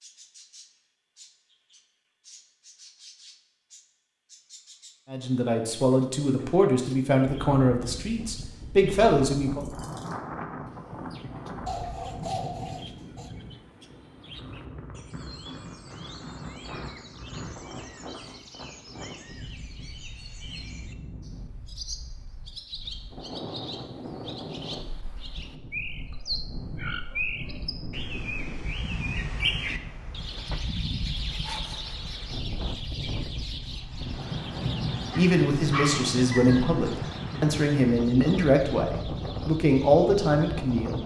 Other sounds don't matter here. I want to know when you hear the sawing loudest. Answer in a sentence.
The volume of the sawing peaks at 12 seconds.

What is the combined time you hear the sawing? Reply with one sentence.
The sawing can be heard for 3 seconds in total.